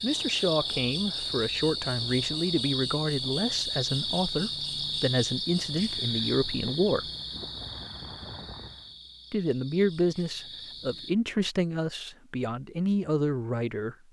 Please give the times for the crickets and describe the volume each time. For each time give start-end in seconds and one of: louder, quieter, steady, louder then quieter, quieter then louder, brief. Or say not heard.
0.0-11.2 quieter.